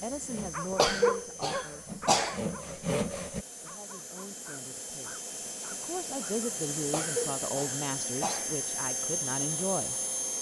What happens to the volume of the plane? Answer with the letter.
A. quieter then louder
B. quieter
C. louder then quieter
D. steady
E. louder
E.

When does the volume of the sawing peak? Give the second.
3 s.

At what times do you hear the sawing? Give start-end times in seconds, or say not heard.
0.0-3.5.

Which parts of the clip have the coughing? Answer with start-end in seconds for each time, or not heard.
0.7-2.4, 6.8-8.6.